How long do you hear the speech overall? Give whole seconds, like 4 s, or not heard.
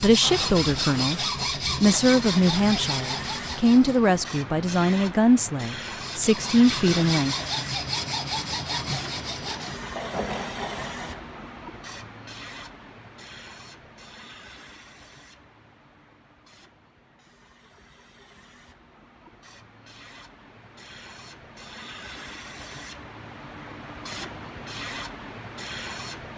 7 s.